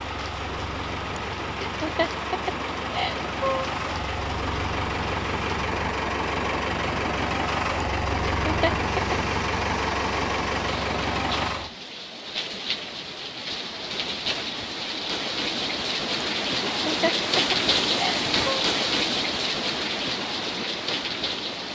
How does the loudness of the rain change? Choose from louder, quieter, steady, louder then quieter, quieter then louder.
louder.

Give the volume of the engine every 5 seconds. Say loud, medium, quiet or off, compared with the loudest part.
medium, loud, loud, off, off.